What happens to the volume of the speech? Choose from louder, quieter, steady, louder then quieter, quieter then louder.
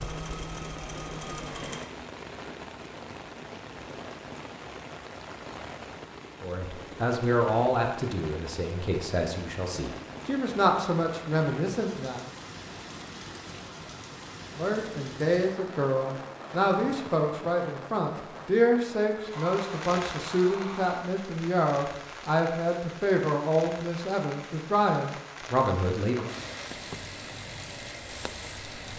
steady.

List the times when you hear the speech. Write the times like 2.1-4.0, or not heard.
6.4-12.2, 14.6-26.3.